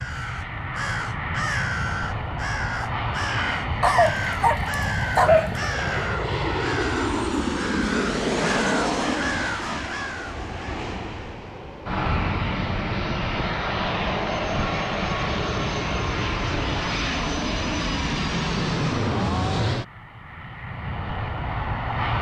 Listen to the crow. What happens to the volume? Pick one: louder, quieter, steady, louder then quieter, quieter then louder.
steady.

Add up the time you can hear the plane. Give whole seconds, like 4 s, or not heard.
22 s.